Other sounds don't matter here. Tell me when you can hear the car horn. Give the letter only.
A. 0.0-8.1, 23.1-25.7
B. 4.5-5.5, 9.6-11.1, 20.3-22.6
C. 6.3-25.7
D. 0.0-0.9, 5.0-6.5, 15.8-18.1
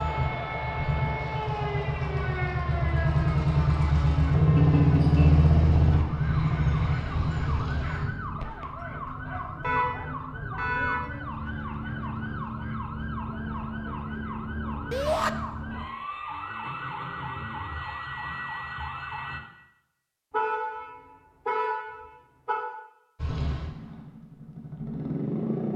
B.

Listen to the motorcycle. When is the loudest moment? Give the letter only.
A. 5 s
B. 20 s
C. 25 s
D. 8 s
A.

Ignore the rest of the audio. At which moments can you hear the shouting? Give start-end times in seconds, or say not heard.
14.9-15.3.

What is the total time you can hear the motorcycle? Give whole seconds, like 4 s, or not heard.
11 s.